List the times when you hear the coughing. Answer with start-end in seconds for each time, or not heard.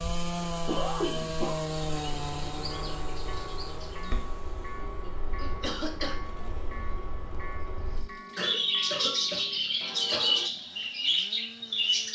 0.7-1.6, 4.8-6.3, 8.3-10.3.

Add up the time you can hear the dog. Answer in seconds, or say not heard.
not heard.